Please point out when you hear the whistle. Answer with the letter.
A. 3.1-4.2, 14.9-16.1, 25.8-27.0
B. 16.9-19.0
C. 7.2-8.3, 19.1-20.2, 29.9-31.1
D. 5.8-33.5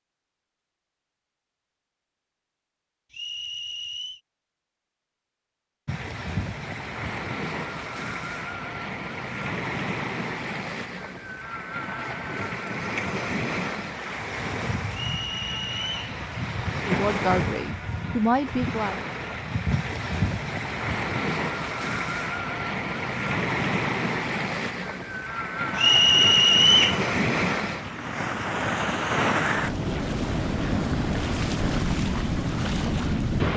A.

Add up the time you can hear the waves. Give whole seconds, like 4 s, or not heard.
28 s.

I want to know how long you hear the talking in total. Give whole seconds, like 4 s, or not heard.
2 s.